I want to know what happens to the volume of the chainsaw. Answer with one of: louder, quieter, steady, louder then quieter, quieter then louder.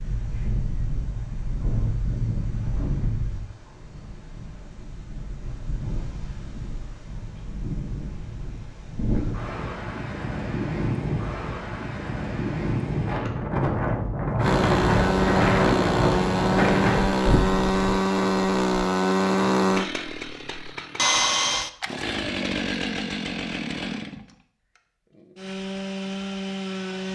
quieter.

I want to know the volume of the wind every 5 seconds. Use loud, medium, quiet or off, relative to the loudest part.
medium, medium, loud, loud, off, off.